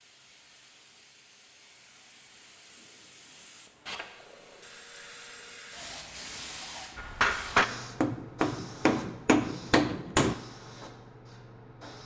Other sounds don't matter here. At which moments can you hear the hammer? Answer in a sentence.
You can hear the hammer from 7.0 to 10.3 s.